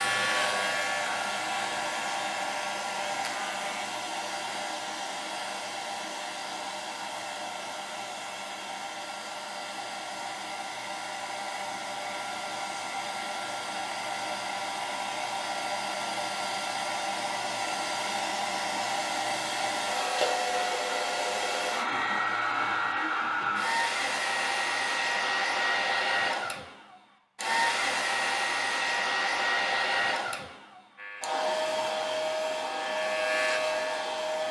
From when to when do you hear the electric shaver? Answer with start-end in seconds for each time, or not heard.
0.0-3.7, 30.9-34.4.